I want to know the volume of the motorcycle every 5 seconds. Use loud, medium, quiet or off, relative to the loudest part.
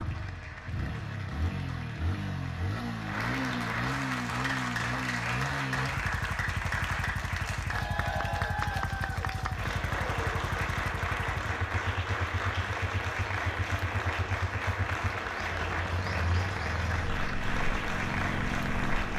loud, loud, medium, loud.